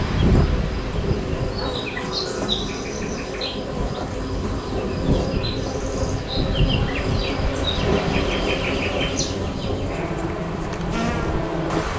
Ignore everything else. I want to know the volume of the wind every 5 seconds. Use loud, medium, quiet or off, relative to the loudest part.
loud, loud, medium.